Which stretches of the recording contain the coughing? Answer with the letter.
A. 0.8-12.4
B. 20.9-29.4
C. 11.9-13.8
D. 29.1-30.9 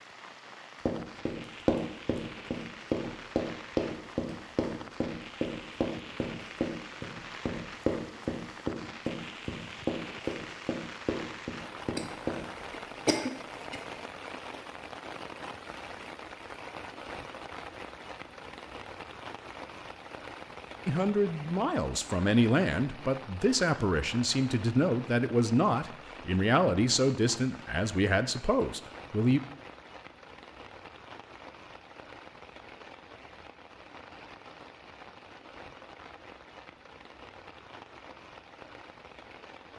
C.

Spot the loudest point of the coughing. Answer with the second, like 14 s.
13 s.